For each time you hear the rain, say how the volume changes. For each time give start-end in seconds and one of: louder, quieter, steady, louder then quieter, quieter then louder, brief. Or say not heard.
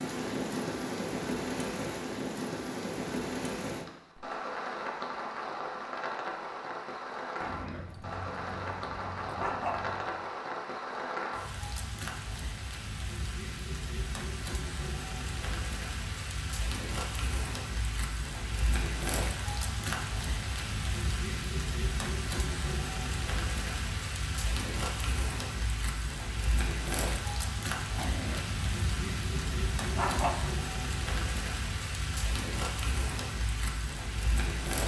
0.0-34.8 steady.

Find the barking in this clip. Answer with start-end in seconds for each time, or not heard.
7.4-10.2, 27.9-30.6.